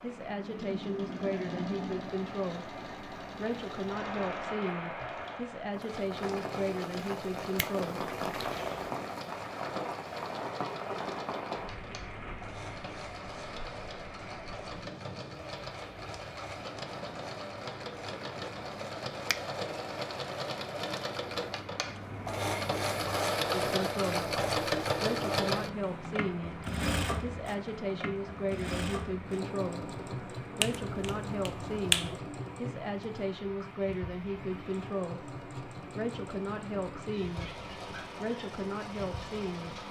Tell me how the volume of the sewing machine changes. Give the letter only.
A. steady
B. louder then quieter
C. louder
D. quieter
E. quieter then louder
B.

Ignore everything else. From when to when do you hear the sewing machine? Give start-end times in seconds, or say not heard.
0.0-39.8.